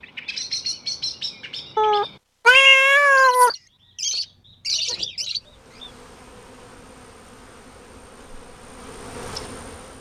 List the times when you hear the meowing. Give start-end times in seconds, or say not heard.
1.8-3.5.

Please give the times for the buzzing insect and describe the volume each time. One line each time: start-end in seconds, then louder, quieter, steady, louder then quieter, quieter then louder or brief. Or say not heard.
5.3-9.9 louder.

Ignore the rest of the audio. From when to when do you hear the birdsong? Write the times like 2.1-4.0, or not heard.
0.0-5.9.